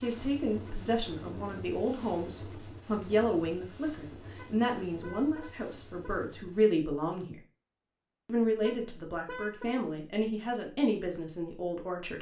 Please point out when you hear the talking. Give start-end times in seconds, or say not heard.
0.0-7.3, 8.2-12.1.